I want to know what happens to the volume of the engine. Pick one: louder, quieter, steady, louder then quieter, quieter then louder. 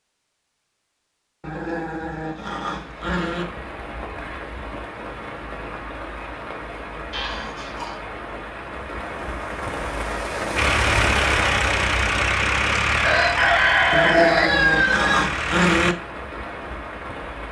quieter.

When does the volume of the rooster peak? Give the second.
14 s.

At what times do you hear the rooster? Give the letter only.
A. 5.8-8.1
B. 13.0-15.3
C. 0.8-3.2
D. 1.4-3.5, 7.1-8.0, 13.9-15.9
B.